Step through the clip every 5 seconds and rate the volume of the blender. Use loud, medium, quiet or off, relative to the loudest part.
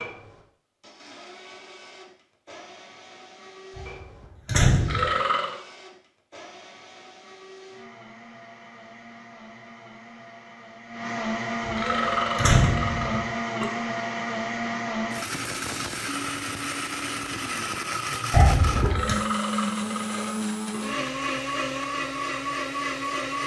quiet, quiet, loud, loud, loud.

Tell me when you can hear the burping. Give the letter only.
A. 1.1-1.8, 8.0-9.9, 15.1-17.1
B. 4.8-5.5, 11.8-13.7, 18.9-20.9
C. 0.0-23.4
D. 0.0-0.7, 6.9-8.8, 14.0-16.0
B.